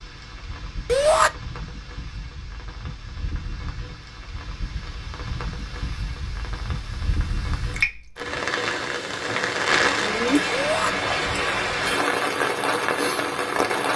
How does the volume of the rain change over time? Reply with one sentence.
The loudness of the rain goes up.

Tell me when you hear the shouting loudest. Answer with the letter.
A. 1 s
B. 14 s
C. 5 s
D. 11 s
A.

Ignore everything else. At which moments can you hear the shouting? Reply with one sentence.
The shouting can be heard from 0.8 to 1.3 s and from 10.5 to 10.9 s.